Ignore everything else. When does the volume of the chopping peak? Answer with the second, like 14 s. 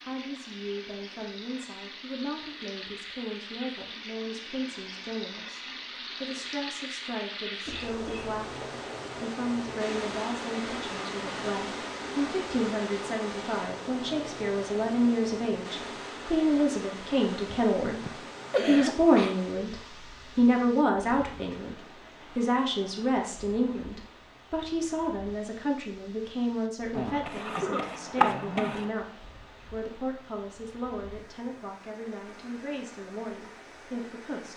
28 s.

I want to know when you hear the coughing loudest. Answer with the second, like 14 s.
19 s.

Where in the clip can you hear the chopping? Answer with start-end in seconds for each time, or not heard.
26.9-28.9.